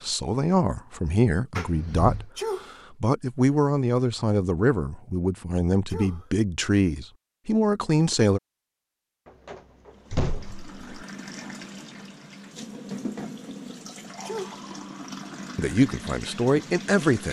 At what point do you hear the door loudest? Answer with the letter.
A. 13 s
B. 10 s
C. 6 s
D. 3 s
B.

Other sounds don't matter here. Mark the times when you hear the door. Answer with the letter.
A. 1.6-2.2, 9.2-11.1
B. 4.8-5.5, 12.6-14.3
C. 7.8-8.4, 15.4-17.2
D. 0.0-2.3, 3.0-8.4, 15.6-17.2
A.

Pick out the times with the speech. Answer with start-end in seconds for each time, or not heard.
0.0-2.3, 3.0-8.4, 15.6-17.2.